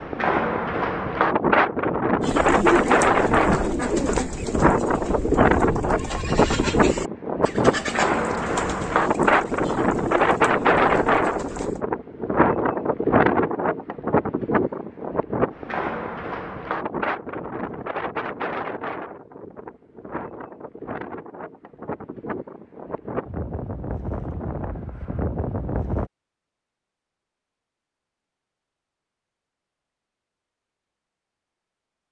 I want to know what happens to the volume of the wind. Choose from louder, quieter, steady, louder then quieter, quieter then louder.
quieter.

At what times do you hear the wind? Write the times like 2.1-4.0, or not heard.
0.0-26.1.